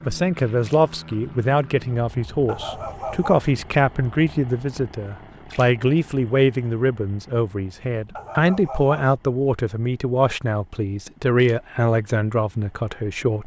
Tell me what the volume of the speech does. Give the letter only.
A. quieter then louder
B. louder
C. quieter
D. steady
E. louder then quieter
D.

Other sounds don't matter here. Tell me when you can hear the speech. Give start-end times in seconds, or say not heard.
0.0-13.4.